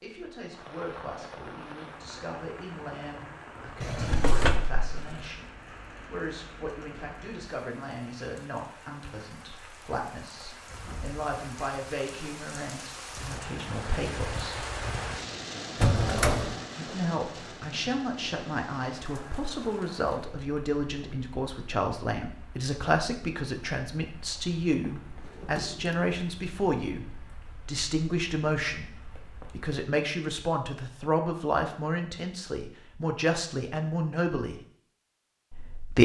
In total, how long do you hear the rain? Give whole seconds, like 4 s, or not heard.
30 s.